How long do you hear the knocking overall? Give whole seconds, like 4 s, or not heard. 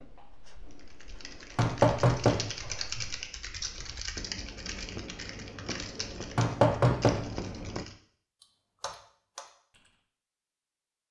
2 s.